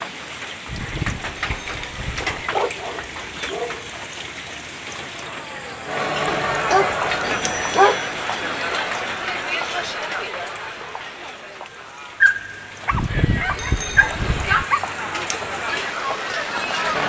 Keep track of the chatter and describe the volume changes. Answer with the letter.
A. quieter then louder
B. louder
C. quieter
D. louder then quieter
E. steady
A.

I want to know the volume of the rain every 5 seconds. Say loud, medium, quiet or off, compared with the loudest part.
loud, loud, medium, loud.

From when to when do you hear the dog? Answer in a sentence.
You can hear the dog from 2.2 to 3.9 s, from 6.2 to 8.0 s and from 12.2 to 14.8 s.